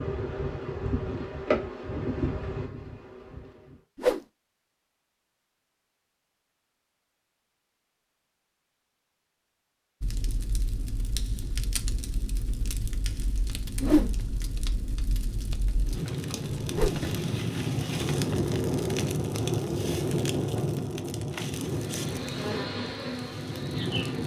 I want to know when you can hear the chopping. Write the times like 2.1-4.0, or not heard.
not heard.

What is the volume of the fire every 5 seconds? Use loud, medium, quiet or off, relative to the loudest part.
off, off, medium, loud, loud.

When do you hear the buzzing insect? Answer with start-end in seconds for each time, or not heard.
0.0-3.8, 21.6-24.2.